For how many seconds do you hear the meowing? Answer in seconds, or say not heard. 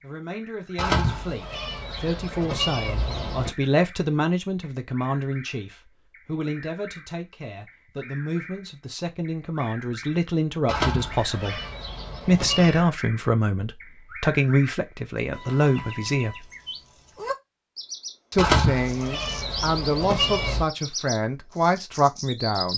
7 s.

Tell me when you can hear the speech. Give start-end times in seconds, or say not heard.
0.0-11.6, 12.2-16.4, 18.3-22.7.